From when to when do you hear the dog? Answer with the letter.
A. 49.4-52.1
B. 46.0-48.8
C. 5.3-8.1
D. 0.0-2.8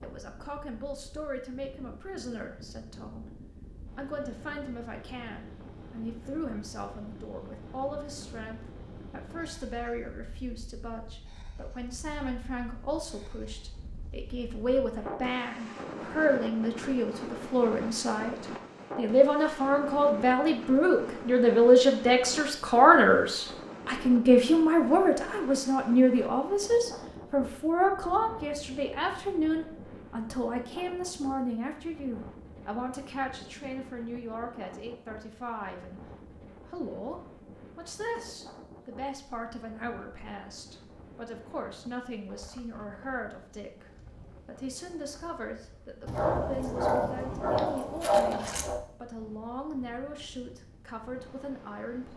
B.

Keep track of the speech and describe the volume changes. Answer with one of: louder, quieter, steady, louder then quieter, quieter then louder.
louder then quieter.